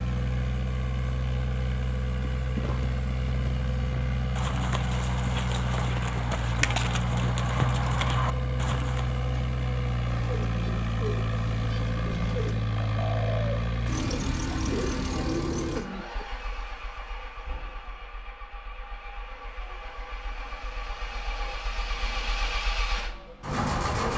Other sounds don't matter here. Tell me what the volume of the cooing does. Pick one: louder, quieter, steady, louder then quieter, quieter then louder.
louder.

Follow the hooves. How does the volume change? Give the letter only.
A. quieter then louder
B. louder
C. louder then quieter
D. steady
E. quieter
B.